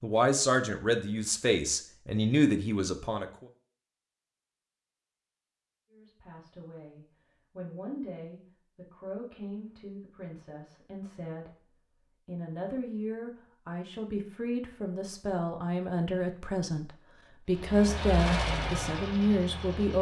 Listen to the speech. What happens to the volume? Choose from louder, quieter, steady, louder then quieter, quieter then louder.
quieter then louder.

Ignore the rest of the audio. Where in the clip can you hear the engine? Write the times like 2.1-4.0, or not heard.
17.4-19.9.